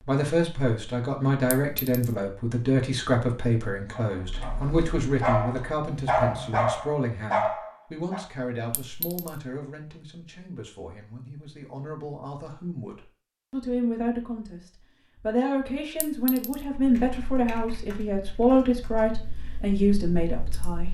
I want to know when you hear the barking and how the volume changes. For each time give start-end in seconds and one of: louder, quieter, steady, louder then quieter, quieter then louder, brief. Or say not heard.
3.9-8.2 louder.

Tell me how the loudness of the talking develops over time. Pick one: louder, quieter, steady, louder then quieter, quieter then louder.
quieter then louder.